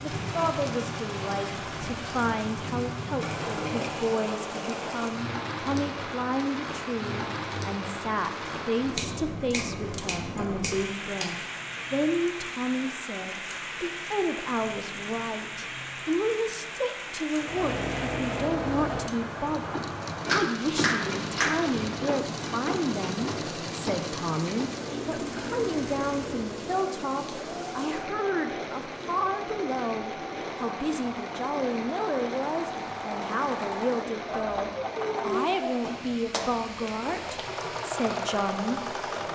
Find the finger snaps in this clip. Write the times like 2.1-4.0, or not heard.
8.9-11.3, 20.2-21.6, 35.8-37.5.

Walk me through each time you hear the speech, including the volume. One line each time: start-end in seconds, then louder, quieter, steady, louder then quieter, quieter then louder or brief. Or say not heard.
0.0-39.3 steady.